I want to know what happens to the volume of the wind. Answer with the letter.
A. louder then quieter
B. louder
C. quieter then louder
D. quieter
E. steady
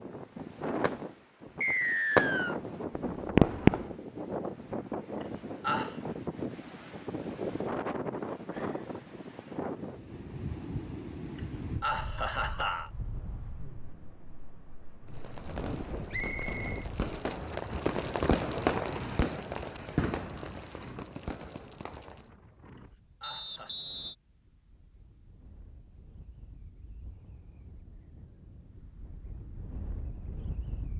D.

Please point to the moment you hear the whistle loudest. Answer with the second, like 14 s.
2 s.